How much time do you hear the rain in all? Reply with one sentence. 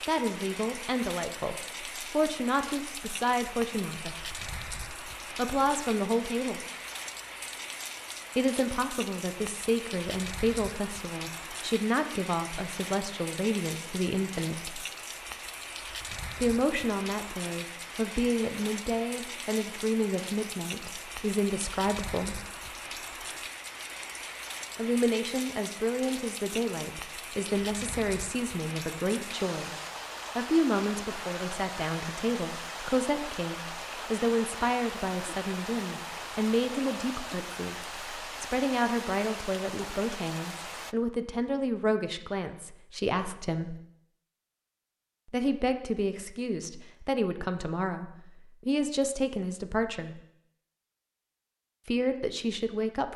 The rain can be heard for 41 seconds in total.